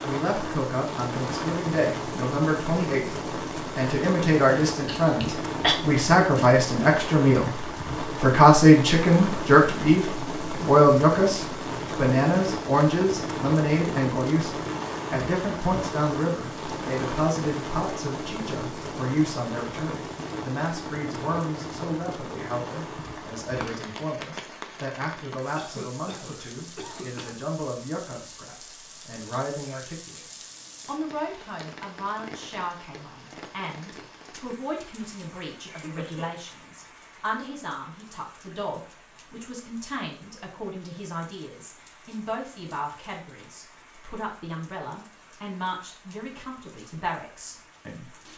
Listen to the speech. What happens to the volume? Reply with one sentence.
The loudness of the speech goes down.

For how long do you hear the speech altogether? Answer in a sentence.
The speech can be heard for 48 seconds in total.